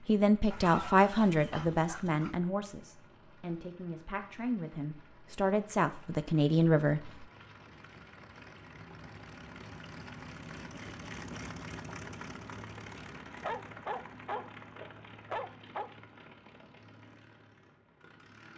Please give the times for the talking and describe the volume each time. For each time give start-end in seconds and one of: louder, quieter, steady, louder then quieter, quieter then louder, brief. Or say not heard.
0.1-7.2 quieter then louder.